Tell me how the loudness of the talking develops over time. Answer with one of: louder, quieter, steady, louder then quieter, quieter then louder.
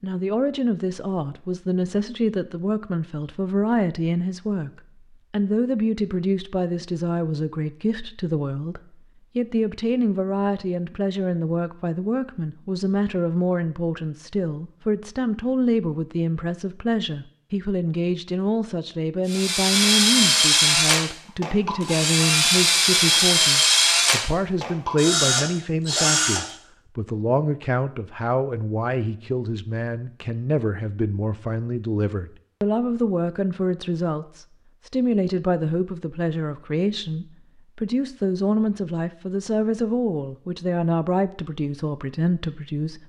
steady.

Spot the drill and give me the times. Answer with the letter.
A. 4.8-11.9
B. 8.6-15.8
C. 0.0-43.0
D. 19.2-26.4
D.